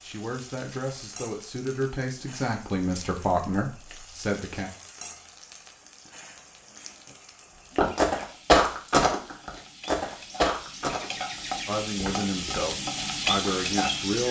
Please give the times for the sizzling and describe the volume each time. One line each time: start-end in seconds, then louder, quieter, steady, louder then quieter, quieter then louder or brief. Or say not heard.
0.0-14.2 louder.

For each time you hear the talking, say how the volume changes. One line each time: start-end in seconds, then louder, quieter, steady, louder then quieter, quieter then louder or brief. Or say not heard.
0.0-4.7 louder
11.7-14.2 brief.